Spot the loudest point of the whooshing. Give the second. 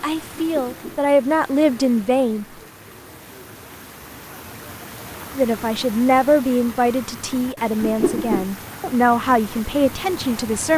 8 s.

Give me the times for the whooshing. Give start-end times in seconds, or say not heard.
0.3-1.0, 7.8-8.5.